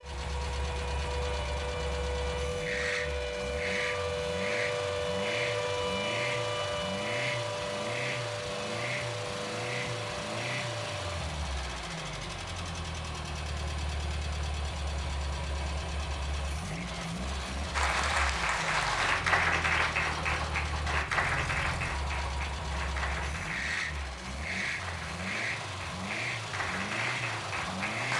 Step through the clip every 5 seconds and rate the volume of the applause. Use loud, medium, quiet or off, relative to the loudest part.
off, off, off, loud, medium, medium.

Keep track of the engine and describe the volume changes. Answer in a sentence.
The volume of the engine stays about the same.